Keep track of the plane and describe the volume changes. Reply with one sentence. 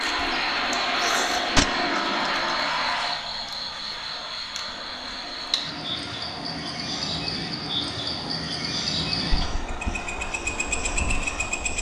The volume of the plane goes down.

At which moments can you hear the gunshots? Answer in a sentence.
The gunshots can be heard from 1.6 to 2.4 s.